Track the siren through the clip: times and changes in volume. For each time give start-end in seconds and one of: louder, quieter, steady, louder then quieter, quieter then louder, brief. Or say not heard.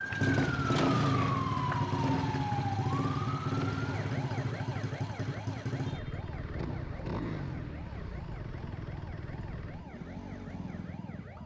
0.0-11.4 quieter.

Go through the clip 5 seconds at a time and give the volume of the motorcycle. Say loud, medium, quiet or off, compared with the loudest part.
loud, medium, quiet.